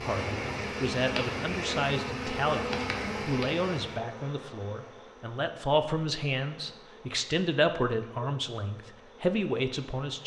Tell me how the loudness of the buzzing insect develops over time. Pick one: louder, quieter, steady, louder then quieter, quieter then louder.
quieter.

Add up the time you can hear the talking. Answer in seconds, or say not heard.
10 s.